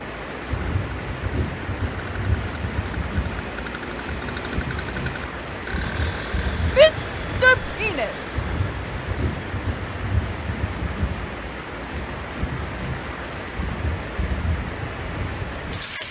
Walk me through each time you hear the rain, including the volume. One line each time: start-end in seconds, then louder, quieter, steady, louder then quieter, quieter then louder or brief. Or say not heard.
0.0-16.0 steady.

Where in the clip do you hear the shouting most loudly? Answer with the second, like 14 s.
7 s.